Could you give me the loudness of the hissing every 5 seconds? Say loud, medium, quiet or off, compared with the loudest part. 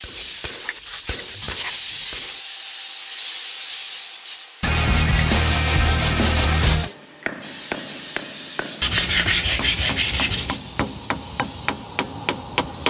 loud, loud, medium.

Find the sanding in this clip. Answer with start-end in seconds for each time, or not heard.
0.1-2.4, 4.6-6.9, 8.8-10.6.